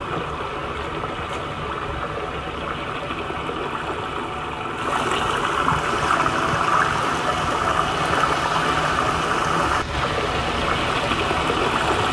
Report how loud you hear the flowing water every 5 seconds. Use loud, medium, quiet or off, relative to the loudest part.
medium, loud, loud.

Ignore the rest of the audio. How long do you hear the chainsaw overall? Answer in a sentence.
The chainsaw can be heard for 6 seconds in total.